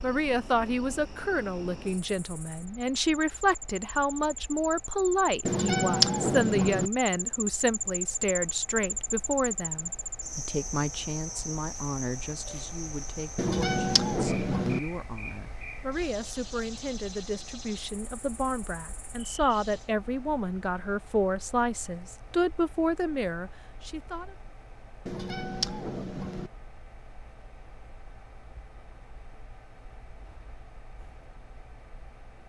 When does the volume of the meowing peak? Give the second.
6 s.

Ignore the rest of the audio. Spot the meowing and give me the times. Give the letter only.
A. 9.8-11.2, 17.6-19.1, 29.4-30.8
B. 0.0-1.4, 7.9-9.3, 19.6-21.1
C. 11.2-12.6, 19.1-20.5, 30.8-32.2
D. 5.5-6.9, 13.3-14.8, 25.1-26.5
D.